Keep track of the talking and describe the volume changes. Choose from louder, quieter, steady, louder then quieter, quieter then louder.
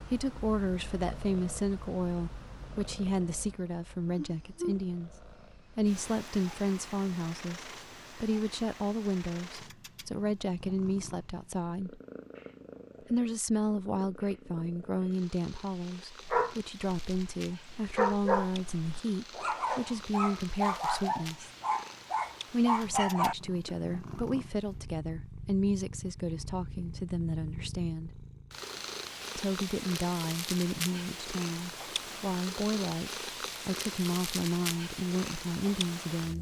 steady.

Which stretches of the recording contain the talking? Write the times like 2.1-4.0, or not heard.
0.0-12.0, 13.1-21.5, 22.5-28.1, 29.4-36.3.